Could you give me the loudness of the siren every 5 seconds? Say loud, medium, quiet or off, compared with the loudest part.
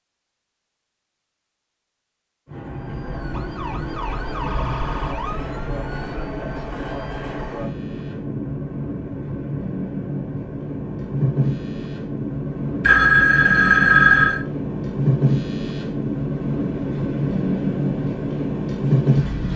loud, loud, off, off.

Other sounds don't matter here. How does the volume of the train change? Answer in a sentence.
The loudness of the train goes up.